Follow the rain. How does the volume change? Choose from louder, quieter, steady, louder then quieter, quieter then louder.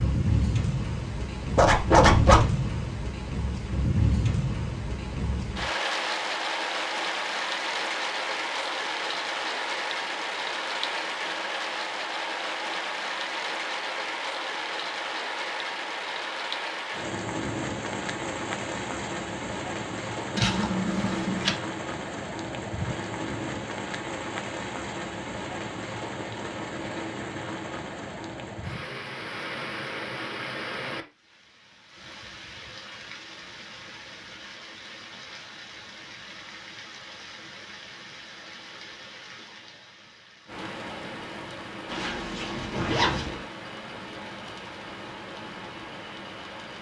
quieter.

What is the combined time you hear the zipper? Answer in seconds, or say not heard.
4 s.